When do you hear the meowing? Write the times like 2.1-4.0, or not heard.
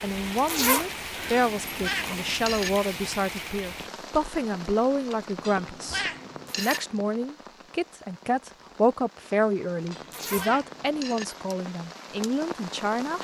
1.4-2.7, 5.4-6.8, 9.9-11.2.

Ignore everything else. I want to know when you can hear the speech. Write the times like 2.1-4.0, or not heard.
0.0-13.1.